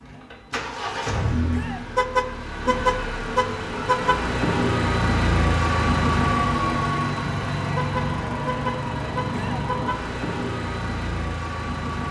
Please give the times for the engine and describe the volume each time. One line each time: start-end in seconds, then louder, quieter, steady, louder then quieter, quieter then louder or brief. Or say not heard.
0.0-12.0 louder then quieter.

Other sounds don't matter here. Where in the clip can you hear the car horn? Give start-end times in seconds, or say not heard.
1.9-4.2, 7.8-10.1.